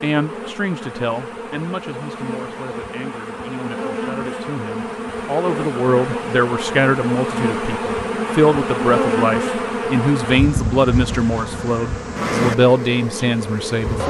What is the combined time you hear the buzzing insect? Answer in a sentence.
You can hear the buzzing insect for 14 seconds altogether.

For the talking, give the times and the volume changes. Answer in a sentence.
You can hear the talking from 0.0 to 14.0 s, getting louder.